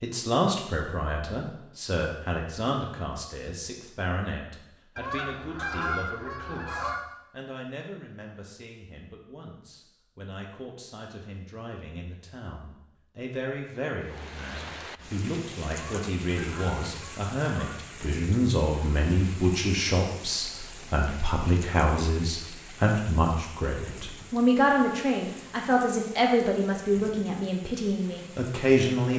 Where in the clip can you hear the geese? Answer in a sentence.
The geese can be heard from 5.0 to 7.0 s and from 15.8 to 17.7 s.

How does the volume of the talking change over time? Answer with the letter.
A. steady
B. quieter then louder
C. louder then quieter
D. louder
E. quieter
B.